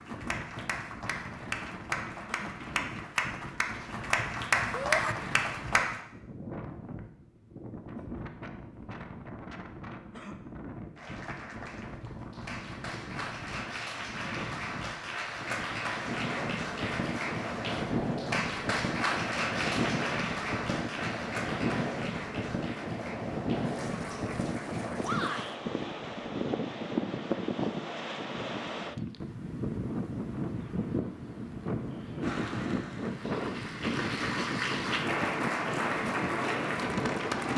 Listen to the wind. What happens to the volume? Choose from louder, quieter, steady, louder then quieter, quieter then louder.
louder.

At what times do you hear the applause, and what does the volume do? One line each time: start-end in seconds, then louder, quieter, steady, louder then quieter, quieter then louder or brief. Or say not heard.
0.0-6.0 louder
10.9-25.6 louder then quieter
32.2-37.5 louder.